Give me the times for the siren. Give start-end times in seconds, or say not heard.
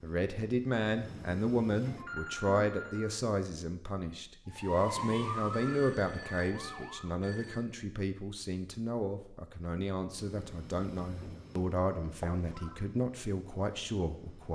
4.5-7.2.